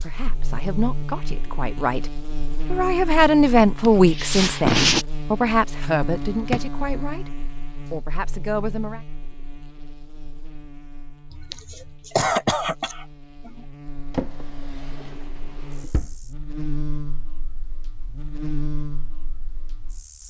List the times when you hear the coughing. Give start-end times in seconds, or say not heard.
3.8-5.0, 11.3-13.6.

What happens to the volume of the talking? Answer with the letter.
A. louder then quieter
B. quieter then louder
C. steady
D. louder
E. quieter
A.